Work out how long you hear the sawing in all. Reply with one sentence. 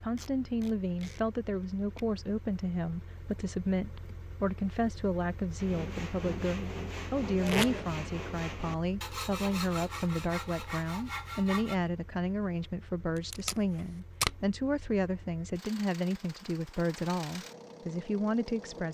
The sawing can be heard for 6 seconds in total.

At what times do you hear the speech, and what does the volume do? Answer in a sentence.
The speech can be heard from 0.0 to 18.8 s, at a steady volume.